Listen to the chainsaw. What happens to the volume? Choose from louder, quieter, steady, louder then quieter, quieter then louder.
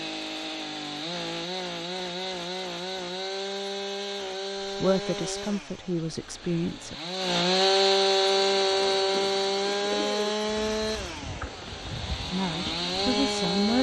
louder then quieter.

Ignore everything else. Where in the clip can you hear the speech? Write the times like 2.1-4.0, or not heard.
4.8-7.0, 12.3-13.7.